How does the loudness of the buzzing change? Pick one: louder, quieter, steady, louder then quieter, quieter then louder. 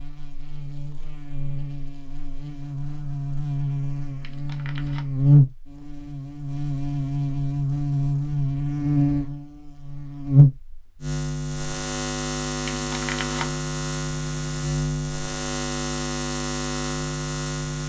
louder then quieter.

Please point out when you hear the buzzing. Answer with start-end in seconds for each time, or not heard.
0.0-17.8.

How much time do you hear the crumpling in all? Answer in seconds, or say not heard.
2 s.